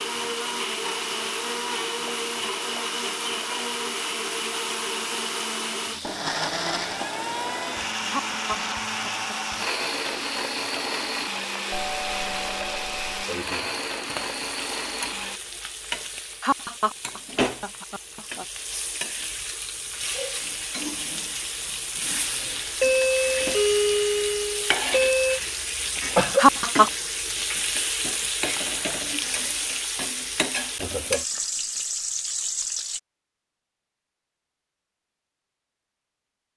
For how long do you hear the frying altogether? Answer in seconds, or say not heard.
33 s.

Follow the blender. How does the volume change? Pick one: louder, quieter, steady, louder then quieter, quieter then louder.
steady.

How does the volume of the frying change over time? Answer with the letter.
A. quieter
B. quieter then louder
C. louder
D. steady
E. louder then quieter
C.